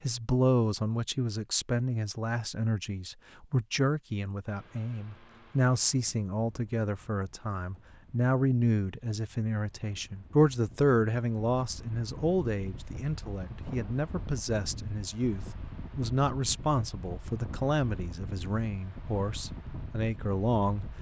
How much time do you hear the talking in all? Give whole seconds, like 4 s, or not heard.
21 s.